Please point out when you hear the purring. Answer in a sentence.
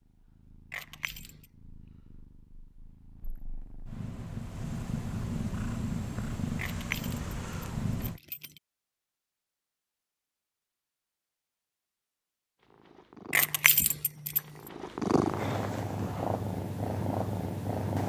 You can hear the purring from 0.0 to 8.2 s and from 12.6 to 18.0 s.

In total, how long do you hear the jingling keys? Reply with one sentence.
The jingling keys can be heard for 4 seconds in total.